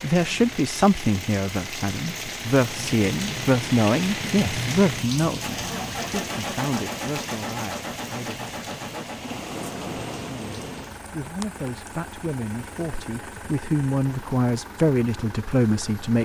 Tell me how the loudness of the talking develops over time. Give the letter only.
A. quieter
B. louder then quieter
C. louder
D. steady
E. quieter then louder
E.